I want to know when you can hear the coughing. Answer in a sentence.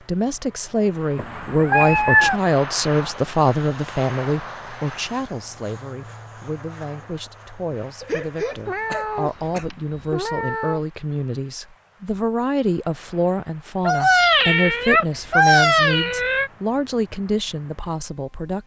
The coughing can be heard from 8.0 to 9.7 s.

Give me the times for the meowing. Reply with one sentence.
The meowing can be heard from 1.1 to 2.4 s, from 8.7 to 10.8 s and from 13.8 to 16.5 s.